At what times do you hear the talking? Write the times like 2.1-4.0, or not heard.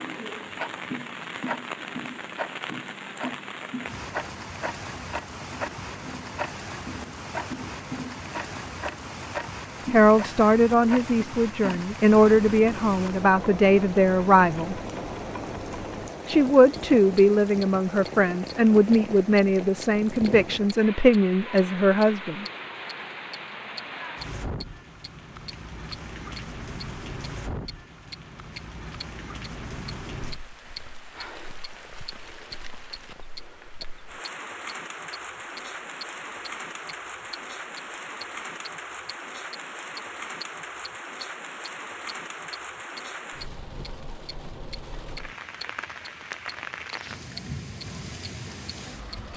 9.9-14.8, 16.2-22.4.